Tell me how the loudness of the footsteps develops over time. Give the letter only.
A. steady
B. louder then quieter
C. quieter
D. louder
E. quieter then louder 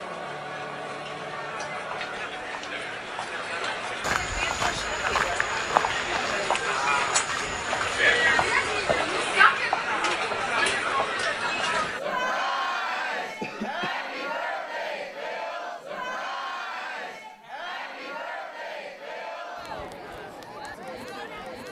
C.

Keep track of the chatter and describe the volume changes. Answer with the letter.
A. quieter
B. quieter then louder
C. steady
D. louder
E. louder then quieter
E.